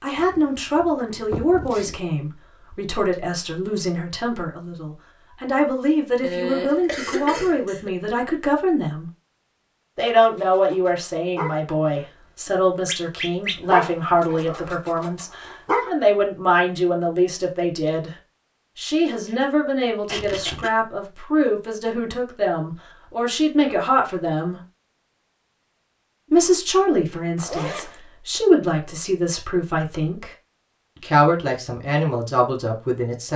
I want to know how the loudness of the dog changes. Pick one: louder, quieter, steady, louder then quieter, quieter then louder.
louder then quieter.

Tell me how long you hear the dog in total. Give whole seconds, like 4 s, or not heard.
6 s.